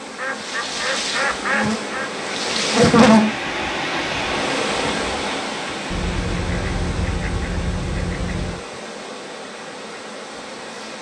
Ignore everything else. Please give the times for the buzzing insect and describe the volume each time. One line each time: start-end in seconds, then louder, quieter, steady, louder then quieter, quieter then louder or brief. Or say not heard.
0.0-10.9 louder then quieter.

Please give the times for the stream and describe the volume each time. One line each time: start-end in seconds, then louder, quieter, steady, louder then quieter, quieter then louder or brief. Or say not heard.
0.0-10.9 louder then quieter.